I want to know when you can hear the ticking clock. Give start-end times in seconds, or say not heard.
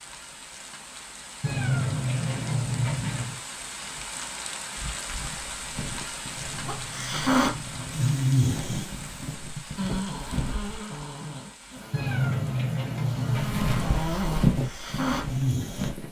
not heard.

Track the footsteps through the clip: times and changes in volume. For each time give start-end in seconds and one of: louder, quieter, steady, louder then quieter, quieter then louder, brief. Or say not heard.
5.2-10.8 louder
13.3-16.0 brief.